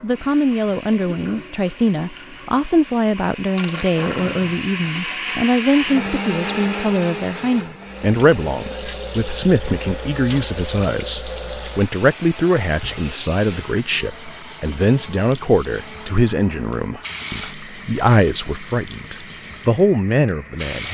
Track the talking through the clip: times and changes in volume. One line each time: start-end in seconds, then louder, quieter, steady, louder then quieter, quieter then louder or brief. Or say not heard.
0.0-20.8 steady.